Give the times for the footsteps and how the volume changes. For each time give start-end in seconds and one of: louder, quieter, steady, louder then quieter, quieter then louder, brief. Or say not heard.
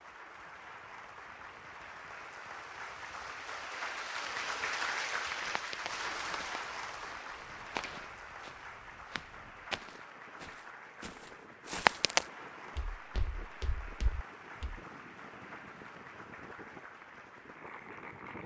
5.3-14.8 louder then quieter.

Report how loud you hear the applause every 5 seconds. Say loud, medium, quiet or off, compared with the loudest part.
loud, loud, medium, medium.